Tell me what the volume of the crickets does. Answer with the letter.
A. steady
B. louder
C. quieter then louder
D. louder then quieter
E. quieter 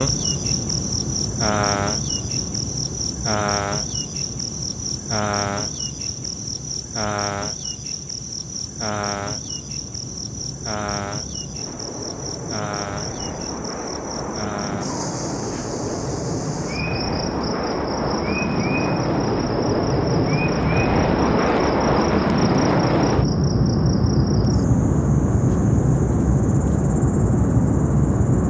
E.